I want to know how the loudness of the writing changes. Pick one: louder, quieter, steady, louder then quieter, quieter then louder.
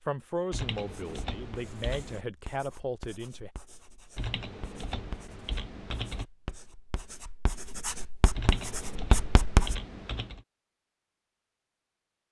louder.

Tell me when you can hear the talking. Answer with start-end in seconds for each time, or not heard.
0.0-3.5.